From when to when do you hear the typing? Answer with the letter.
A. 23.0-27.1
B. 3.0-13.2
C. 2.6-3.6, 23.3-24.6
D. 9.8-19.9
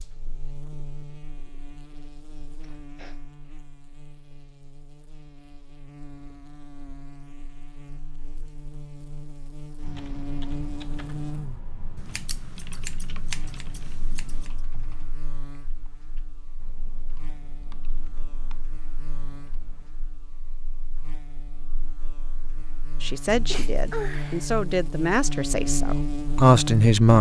D.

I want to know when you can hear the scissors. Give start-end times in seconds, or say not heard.
11.9-14.6.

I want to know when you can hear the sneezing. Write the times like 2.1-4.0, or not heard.
2.6-3.6, 23.3-24.6.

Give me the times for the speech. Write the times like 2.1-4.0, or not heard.
23.0-27.1.